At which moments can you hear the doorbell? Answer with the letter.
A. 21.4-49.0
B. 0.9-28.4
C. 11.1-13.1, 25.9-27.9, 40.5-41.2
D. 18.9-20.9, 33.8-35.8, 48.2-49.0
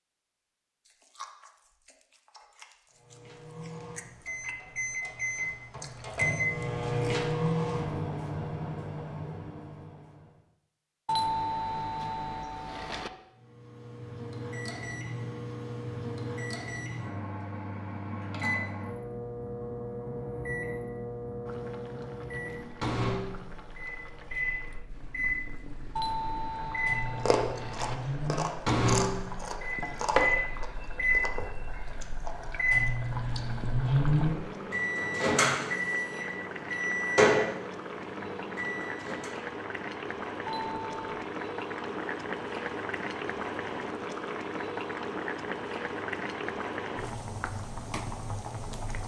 C.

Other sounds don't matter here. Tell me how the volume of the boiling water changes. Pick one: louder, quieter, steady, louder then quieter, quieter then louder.
louder.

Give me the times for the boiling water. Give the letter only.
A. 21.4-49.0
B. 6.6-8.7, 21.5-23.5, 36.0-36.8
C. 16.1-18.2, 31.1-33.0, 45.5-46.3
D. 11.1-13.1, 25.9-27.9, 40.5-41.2
A.